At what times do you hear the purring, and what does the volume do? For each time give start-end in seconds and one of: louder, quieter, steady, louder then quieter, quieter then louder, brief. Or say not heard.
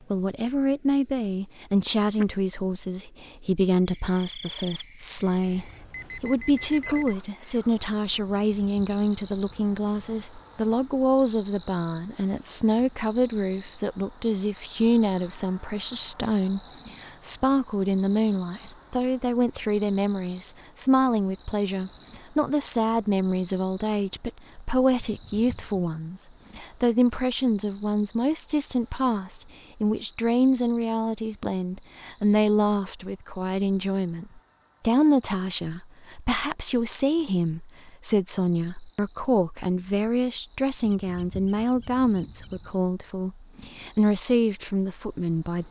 not heard.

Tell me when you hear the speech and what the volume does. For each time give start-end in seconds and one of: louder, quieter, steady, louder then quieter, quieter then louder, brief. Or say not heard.
0.1-45.6 steady.